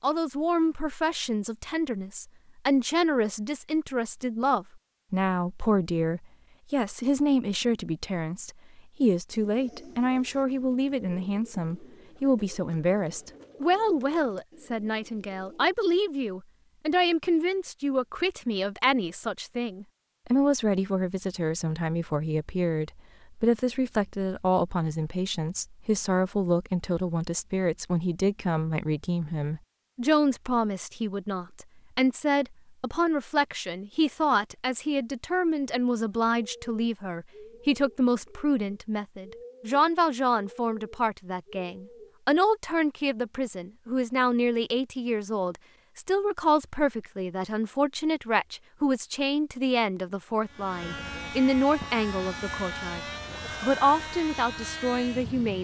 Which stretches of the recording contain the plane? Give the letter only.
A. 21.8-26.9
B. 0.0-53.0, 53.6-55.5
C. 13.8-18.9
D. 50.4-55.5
D.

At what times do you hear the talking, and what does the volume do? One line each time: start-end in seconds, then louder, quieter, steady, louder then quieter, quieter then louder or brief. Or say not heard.
0.0-53.0 steady
53.6-55.5 brief.